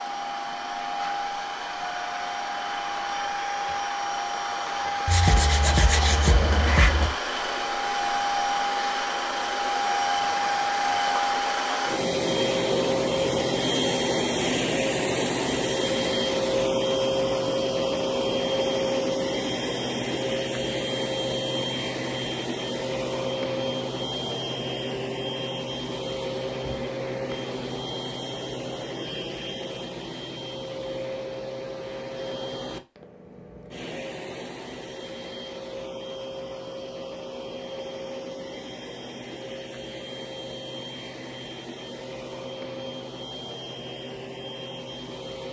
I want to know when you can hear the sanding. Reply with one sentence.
The sanding can be heard from 5.0 to 7.1 s.